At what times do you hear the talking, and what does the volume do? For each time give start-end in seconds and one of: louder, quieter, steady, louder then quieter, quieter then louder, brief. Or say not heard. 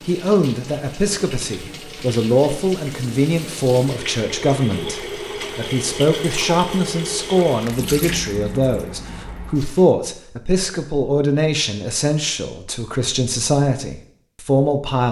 0.1-15.0 steady.